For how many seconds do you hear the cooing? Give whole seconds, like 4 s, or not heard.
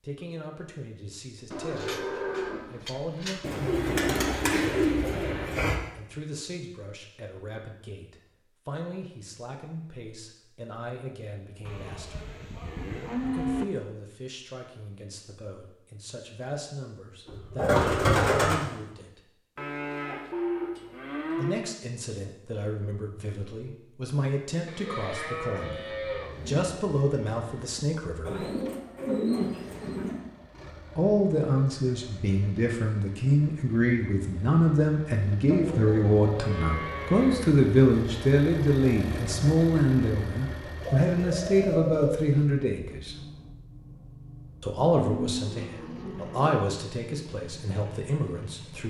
7 s.